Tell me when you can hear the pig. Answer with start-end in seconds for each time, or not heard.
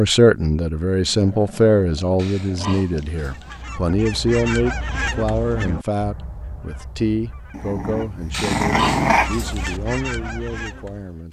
2.1-3.6, 8.3-9.8.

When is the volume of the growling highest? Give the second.
9 s.